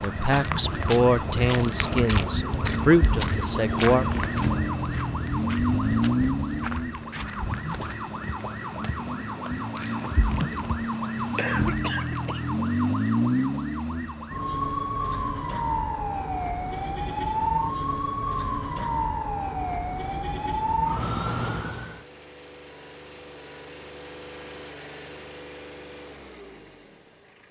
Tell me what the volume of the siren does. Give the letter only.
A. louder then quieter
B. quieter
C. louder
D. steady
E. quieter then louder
D.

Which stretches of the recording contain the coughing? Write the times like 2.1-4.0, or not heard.
9.8-12.4.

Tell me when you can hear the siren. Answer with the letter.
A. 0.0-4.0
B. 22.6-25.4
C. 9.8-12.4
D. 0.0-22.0
D.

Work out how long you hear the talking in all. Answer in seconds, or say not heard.
4 s.